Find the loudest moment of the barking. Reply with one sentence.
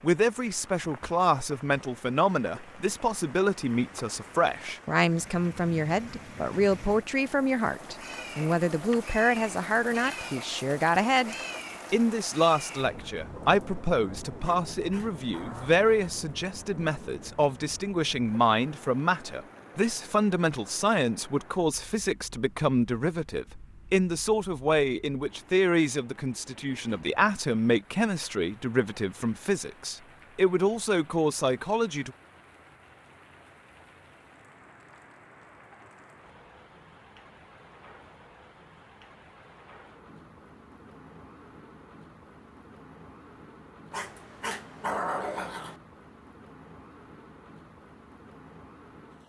The volume of the barking peaks at 45 seconds.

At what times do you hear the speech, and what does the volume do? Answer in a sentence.
You can hear the speech from 0.0 to 32.1 s, at a steady volume.